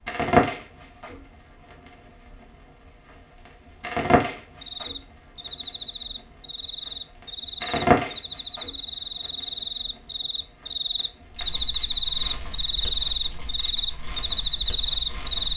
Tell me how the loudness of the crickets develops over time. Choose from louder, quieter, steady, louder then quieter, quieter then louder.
louder.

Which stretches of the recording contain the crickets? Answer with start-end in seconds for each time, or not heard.
4.6-15.5.